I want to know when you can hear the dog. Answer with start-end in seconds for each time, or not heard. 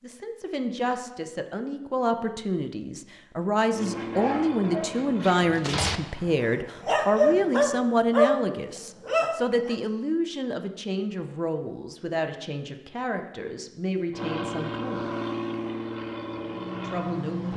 3.9-9.8.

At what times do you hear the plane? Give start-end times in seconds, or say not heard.
3.7-7.8, 14.1-17.5.